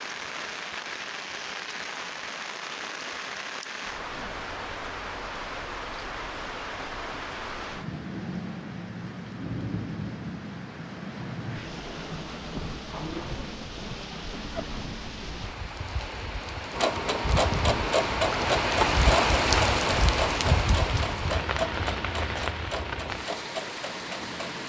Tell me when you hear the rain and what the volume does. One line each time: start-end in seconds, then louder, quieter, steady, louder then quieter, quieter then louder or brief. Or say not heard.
0.0-24.6 louder.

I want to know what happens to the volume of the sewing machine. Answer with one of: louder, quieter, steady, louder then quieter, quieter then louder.
quieter.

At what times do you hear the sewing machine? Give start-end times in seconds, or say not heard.
16.8-24.6.